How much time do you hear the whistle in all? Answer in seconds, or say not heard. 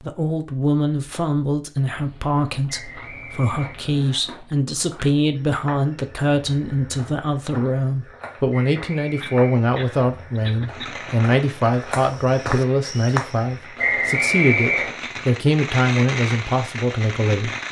4 s.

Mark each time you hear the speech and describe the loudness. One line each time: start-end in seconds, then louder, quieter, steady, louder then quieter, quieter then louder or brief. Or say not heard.
0.0-17.6 steady.